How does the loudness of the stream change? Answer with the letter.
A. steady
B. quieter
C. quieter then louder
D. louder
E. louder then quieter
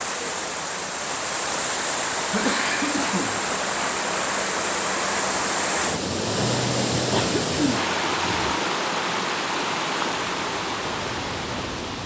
A.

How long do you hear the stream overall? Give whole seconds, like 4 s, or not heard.
12 s.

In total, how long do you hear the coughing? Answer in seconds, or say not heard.
3 s.